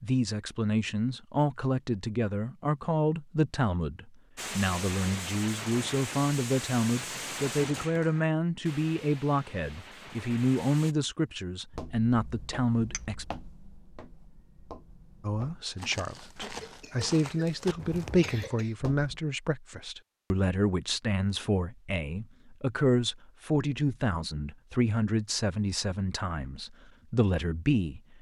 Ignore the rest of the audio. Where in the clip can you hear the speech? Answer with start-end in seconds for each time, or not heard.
0.0-13.2, 15.2-28.0.